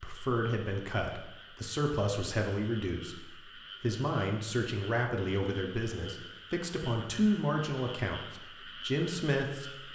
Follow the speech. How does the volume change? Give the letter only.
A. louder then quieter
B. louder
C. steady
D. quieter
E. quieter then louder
C.